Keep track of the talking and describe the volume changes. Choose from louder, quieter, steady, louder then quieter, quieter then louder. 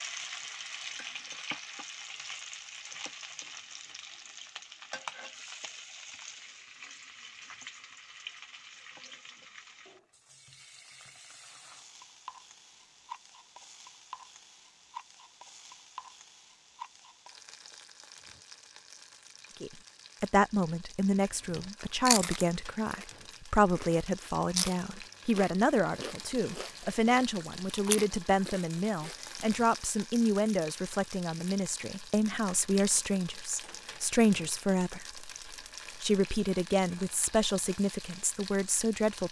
steady.